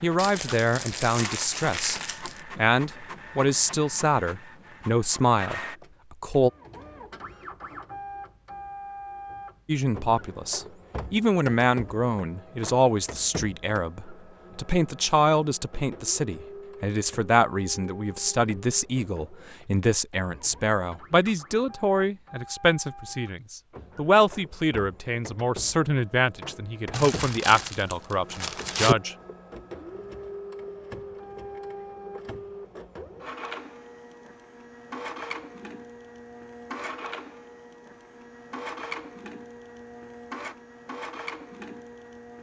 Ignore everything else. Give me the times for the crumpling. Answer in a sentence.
The crumpling can be heard from 0.1 to 2.4 s and from 26.9 to 28.9 s.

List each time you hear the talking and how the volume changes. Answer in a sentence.
The talking can be heard from 0.0 to 6.5 s, at a steady volume; and from 9.7 to 29.1 s, at a steady volume.